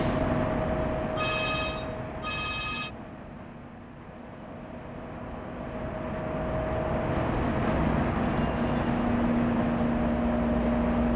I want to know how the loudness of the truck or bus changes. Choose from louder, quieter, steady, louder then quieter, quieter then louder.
quieter then louder.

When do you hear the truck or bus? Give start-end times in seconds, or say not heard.
0.0-11.1.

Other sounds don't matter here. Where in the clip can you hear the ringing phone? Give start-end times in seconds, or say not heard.
1.1-2.9, 8.2-9.1.